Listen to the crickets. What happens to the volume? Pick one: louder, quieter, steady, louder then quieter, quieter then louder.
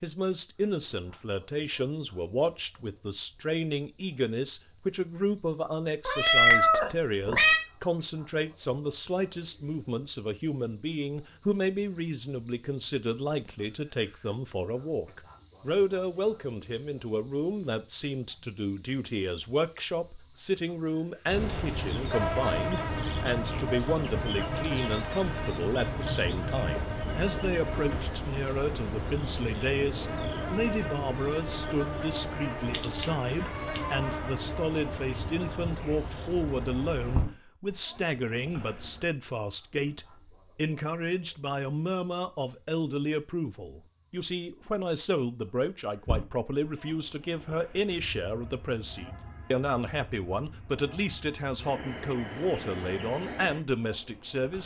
louder then quieter.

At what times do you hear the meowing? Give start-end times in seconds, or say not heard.
6.0-7.6, 32.7-34.0.